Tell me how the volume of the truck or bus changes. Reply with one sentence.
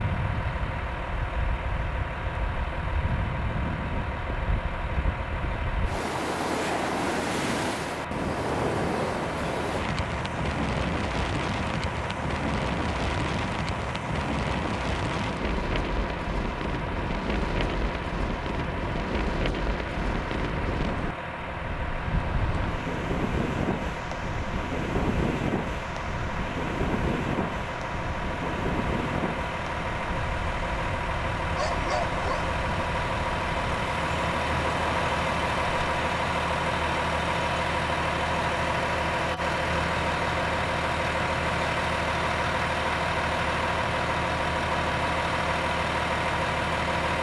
The volume of the truck or bus goes up.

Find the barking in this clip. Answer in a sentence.
You can hear the barking from 31.5 to 32.5 s.